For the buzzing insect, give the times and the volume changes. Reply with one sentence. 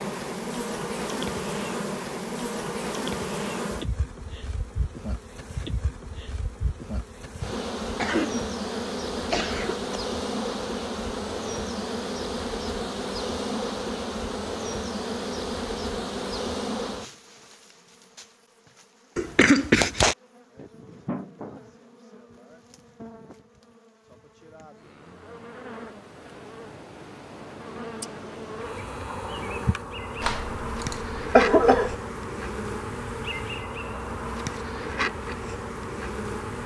The buzzing insect can be heard from 0.0 to 36.6 s, getting quieter then louder.